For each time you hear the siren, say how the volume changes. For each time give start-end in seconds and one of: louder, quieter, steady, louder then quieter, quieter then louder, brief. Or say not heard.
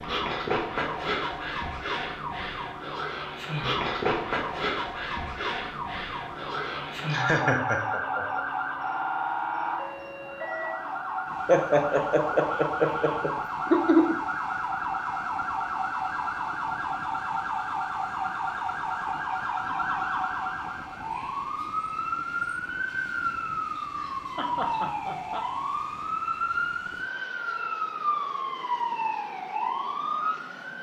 0.0-30.7 steady.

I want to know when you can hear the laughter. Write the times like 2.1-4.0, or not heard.
7.1-8.4, 11.4-14.2, 23.5-25.4.